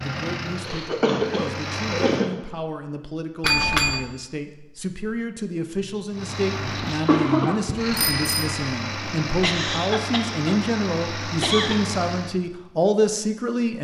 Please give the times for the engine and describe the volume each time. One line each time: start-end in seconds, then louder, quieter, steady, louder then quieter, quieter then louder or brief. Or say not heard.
0.0-2.3 brief
6.1-12.4 steady.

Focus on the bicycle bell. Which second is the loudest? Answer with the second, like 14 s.
4 s.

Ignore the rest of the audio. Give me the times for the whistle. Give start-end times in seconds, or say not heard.
not heard.